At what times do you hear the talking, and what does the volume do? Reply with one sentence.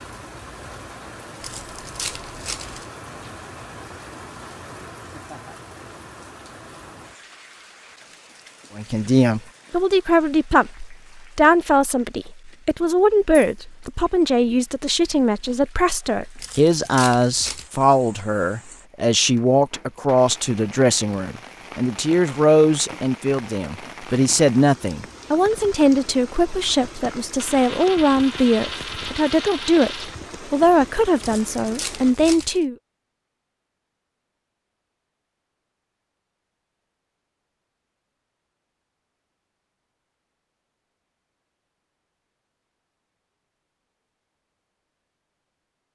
You can hear the talking from 8.8 to 32.8 s, at a steady volume.